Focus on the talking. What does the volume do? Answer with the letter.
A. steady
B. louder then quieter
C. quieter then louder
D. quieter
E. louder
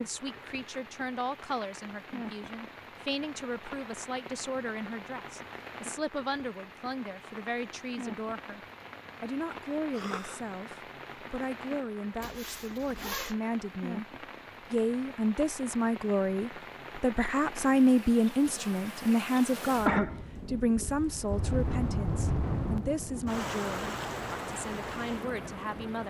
B.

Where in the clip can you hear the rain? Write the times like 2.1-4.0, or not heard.
0.0-26.0.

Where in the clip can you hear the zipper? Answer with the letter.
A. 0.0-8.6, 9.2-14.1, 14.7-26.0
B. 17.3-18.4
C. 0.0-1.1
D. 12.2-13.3
D.